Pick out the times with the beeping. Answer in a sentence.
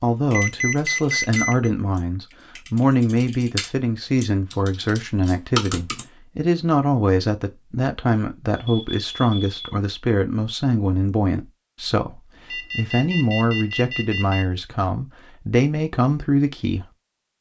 The beeping can be heard from 0.3 to 1.7 s, from 8.5 to 9.8 s and from 12.5 to 14.4 s.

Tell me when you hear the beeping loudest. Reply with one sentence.
The volume of the beeping peaks at 1 second.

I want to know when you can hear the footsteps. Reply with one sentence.
You can't hear the footsteps here.